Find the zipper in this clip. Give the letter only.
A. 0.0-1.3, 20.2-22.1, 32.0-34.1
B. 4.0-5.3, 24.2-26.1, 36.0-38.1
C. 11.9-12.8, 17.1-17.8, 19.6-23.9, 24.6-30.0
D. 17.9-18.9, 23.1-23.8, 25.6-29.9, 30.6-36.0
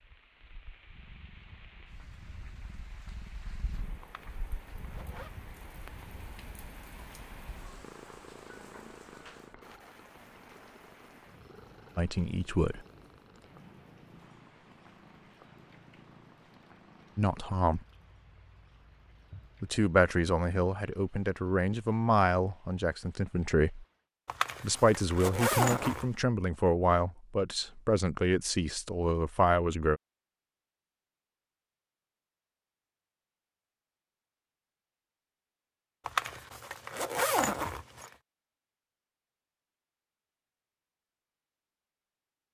B.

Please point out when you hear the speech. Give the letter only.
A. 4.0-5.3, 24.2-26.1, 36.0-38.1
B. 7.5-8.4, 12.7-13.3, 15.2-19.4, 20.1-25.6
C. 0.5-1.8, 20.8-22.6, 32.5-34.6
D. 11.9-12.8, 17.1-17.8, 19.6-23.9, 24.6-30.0
D.